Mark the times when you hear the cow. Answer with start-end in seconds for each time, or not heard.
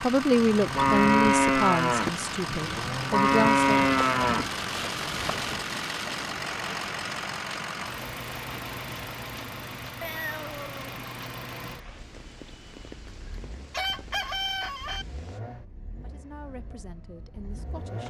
0.4-5.6.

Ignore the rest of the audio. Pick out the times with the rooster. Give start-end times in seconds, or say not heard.
13.7-15.1.